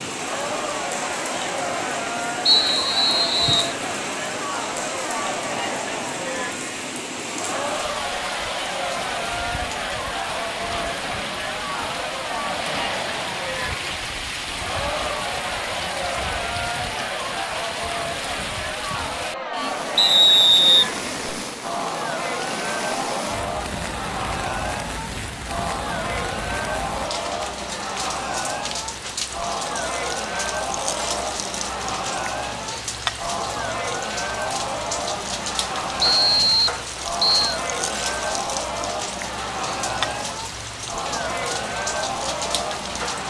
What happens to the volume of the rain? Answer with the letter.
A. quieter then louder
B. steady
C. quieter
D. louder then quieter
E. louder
B.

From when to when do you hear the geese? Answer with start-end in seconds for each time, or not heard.
not heard.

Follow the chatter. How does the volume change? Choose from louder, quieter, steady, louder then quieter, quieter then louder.
steady.